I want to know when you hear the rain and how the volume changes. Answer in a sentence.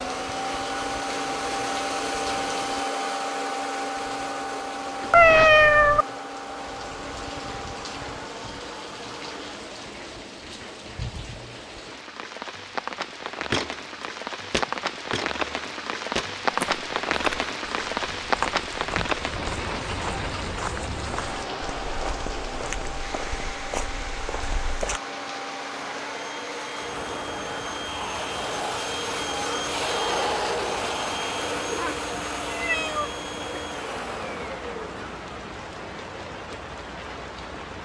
You can hear the rain from 0.0 to 37.7 s, getting louder then quieter.